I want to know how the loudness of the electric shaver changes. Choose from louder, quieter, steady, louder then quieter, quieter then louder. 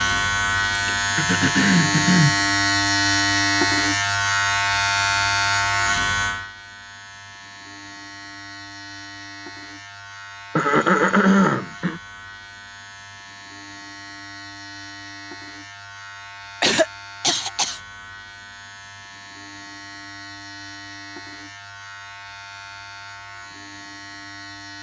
quieter.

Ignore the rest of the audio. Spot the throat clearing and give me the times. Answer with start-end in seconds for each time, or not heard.
0.8-2.4, 10.6-12.0, 16.6-17.8.